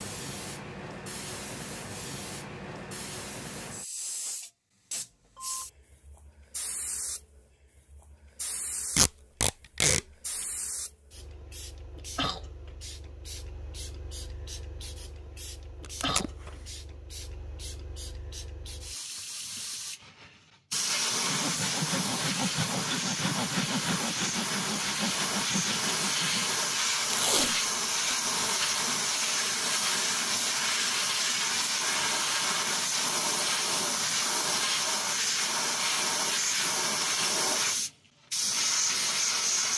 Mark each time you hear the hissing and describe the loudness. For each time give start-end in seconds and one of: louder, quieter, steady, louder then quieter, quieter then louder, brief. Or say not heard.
0.0-39.7 louder.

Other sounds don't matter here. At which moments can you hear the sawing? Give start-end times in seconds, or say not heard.
21.1-26.6.